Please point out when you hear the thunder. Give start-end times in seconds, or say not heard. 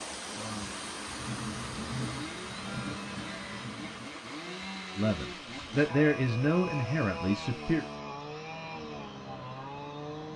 0.3-4.1.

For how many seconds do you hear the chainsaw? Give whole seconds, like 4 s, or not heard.
10 s.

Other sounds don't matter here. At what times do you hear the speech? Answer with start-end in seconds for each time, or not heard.
5.0-7.8.